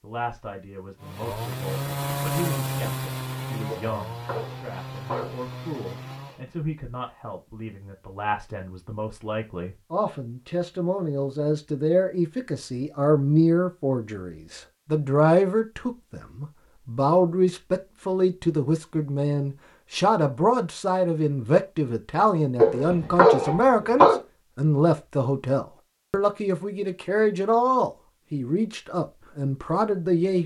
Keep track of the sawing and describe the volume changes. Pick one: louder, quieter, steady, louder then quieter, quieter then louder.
quieter.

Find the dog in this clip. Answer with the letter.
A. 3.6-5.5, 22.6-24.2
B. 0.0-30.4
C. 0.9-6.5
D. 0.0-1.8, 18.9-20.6
A.